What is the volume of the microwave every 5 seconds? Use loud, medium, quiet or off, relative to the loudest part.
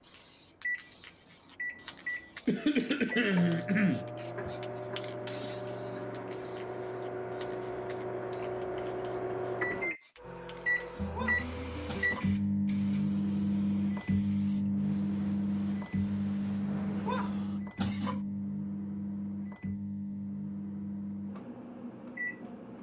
medium, medium, loud, loud, medium.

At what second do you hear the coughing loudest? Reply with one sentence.
The loudest moment of the coughing is at 3 seconds.